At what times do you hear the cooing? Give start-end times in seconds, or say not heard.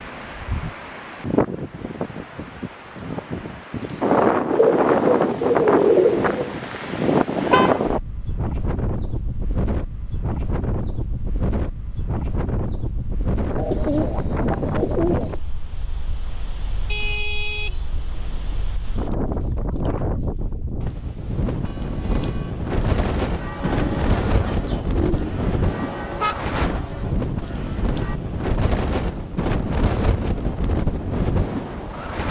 4.5-6.5, 13.6-15.3, 23.6-25.3.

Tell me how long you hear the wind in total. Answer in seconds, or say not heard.
32 s.